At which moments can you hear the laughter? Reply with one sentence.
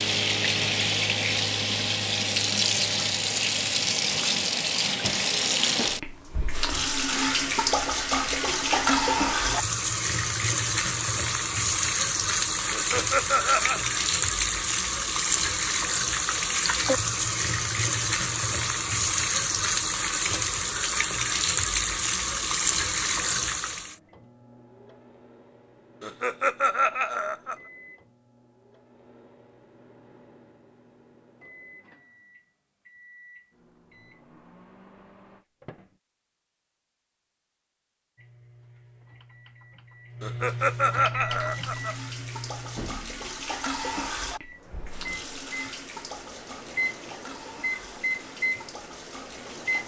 The laughter can be heard from 12.7 to 13.8 s, from 26.0 to 27.6 s and from 40.2 to 42.0 s.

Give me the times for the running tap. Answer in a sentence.
The running tap can be heard from 0.0 to 23.9 s and from 41.3 to 49.8 s.